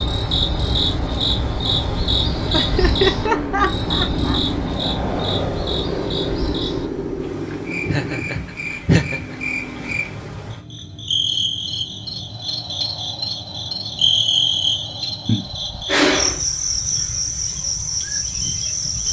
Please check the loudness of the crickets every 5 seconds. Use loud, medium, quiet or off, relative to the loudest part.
loud, medium, loud, loud.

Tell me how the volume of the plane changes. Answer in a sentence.
The volume of the plane goes down.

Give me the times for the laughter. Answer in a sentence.
You can hear the laughter from 2.5 to 4.4 s, from 7.8 to 9.3 s and from 15.2 to 16.4 s.